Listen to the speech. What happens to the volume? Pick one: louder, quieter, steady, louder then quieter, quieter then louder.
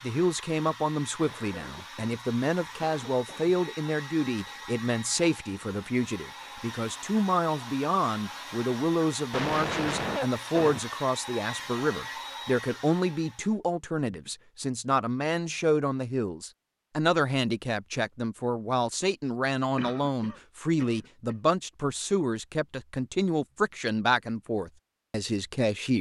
steady.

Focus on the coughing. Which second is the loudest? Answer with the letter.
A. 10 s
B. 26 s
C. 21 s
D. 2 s
A.